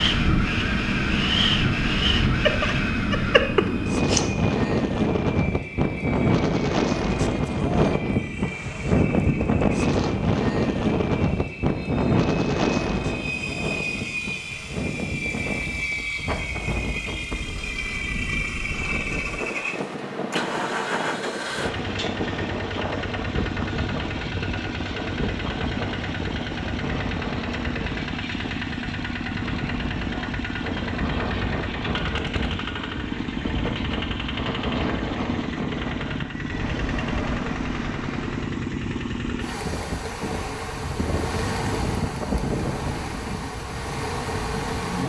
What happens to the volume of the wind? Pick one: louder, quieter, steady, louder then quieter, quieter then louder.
quieter.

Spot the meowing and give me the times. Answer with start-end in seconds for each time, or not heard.
2.5-4.2.